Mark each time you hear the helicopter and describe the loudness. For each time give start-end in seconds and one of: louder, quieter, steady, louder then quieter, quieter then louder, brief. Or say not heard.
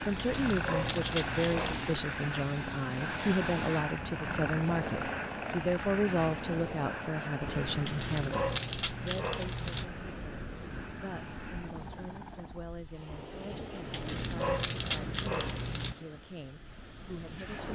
0.0-12.7 quieter.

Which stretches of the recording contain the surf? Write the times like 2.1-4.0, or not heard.
0.0-17.7.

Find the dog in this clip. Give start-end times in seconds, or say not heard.
0.1-1.8, 7.8-9.8, 13.9-15.9.